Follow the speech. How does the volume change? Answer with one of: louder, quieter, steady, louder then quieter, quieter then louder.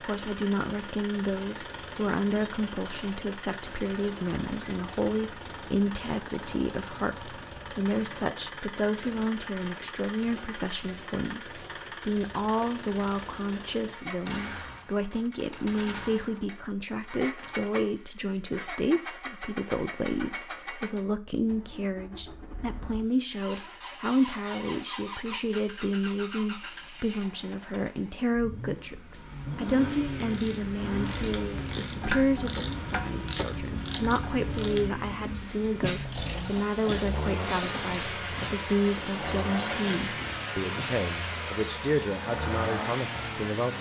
steady.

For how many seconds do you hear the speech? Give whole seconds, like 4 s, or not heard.
44 s.